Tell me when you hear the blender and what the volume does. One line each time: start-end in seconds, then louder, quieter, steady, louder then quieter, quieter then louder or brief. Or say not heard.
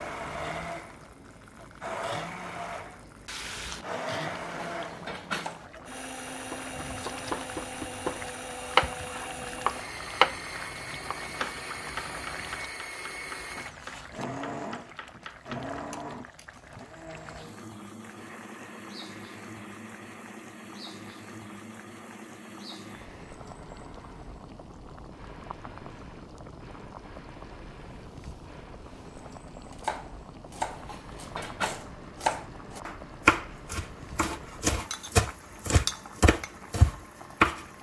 0.0-37.7 quieter.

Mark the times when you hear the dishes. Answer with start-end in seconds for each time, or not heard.
4.5-5.5, 30.6-31.9.